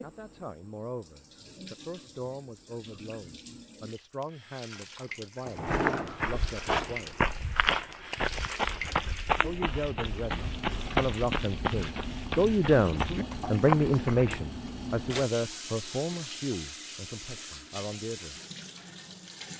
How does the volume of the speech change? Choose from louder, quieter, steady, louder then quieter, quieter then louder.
louder then quieter.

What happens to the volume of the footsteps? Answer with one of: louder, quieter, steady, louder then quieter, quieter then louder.
steady.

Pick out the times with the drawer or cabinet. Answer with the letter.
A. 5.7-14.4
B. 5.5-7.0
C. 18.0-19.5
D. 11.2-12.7
B.